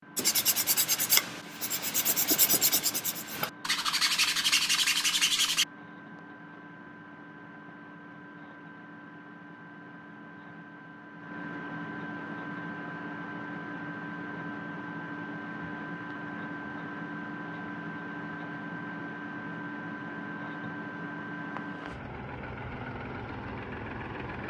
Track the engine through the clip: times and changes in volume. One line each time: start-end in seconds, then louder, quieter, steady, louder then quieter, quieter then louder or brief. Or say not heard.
0.0-24.4 louder.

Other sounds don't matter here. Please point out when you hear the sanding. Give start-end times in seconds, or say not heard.
0.1-5.7.